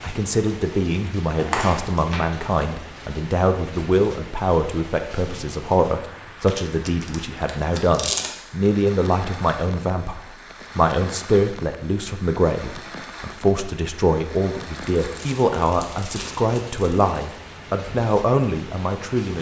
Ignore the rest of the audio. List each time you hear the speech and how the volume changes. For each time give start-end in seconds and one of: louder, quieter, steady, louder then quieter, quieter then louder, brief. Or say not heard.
0.0-19.3 steady.